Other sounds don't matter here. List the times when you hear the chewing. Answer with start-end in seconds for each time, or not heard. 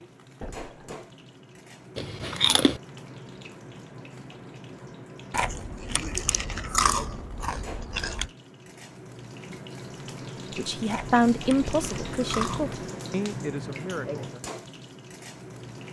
1.9-2.8, 5.3-8.3, 10.9-12.7.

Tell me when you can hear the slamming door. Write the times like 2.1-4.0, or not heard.
0.4-1.1.